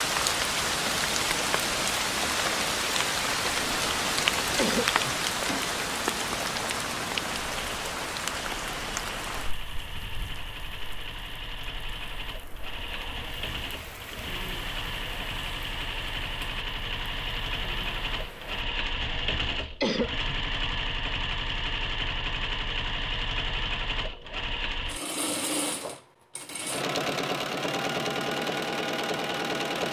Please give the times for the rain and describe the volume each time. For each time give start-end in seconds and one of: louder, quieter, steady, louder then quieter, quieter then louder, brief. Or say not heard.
0.0-18.6 quieter.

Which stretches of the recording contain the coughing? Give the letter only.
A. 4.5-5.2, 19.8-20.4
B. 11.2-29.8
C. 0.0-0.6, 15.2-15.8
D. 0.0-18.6
A.